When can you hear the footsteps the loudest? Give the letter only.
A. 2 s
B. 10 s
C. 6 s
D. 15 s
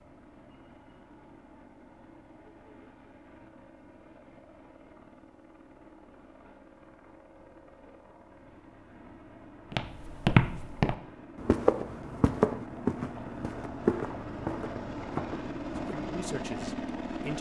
B.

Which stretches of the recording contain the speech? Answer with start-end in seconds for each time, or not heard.
15.8-17.3.